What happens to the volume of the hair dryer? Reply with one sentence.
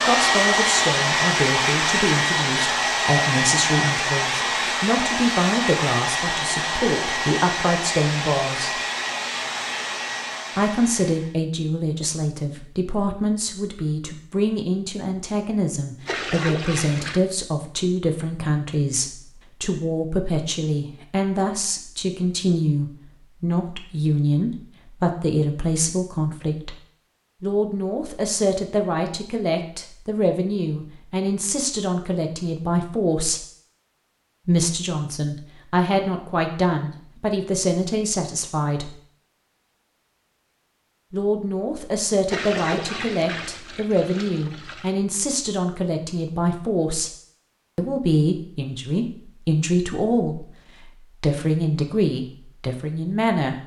The loudness of the hair dryer goes down.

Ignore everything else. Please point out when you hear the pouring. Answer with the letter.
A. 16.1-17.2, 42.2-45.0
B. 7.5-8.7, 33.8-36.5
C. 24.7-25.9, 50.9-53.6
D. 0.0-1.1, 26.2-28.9
A.